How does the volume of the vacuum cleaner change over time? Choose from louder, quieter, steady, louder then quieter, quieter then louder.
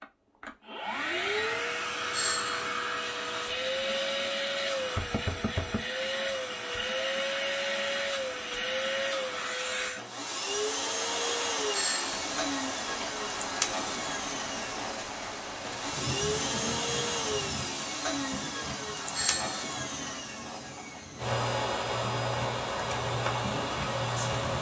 steady.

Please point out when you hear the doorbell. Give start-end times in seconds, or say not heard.
2.1-2.6, 11.7-12.2, 19.1-19.6.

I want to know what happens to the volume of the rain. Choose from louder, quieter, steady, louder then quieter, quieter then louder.
quieter then louder.